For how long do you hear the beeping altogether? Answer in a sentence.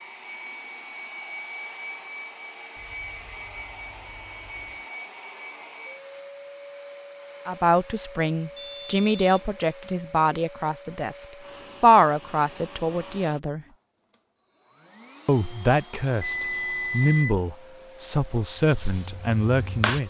The beeping can be heard for 4 seconds in total.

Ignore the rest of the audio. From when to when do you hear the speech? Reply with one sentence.
The speech can be heard from 7.5 to 13.7 s and from 15.2 to 20.0 s.